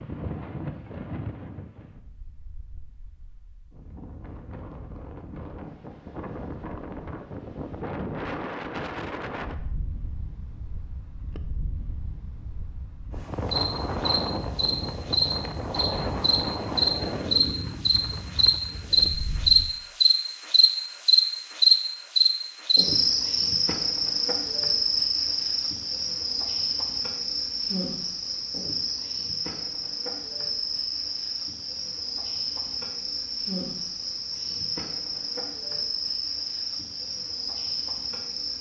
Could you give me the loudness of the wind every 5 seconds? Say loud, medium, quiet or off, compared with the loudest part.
medium, loud, loud, loud, off, off, off, off.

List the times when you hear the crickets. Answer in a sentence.
You can hear the crickets from 13.4 to 38.5 s.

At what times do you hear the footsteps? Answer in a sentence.
You can't hear the footsteps here.